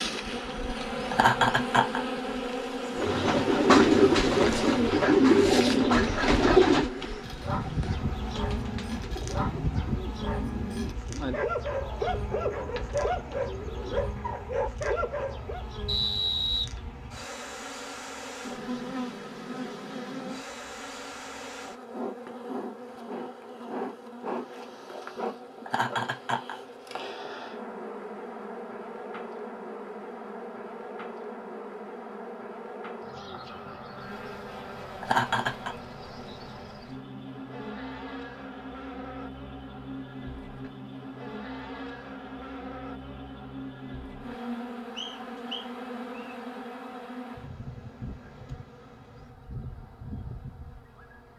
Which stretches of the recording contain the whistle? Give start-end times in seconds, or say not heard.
15.8-16.6, 45.0-46.4.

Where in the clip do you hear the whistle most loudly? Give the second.
16 s.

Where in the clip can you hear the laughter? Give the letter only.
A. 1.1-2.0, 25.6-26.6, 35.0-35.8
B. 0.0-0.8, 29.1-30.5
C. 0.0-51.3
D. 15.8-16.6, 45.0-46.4
A.